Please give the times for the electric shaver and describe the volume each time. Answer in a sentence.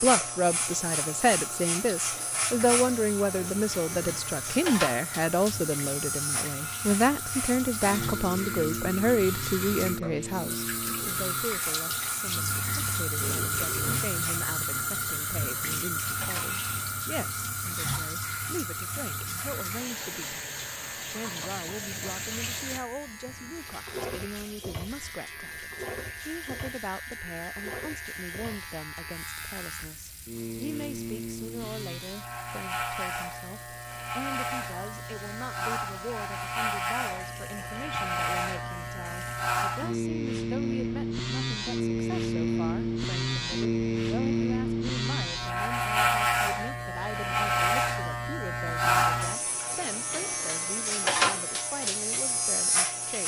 You can hear the electric shaver from 0.0 to 53.2 s, getting quieter then louder.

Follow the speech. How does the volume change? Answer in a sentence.
The loudness of the speech goes down.